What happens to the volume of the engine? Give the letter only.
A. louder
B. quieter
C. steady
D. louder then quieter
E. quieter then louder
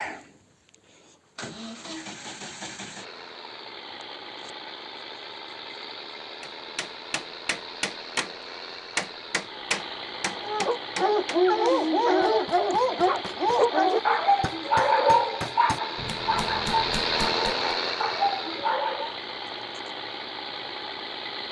A.